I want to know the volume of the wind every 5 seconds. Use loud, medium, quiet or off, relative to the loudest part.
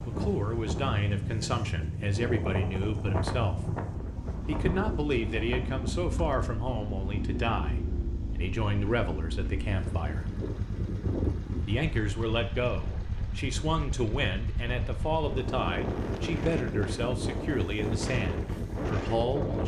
loud, medium, medium, loud.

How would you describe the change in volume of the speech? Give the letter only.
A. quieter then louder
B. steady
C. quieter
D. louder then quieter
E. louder
B.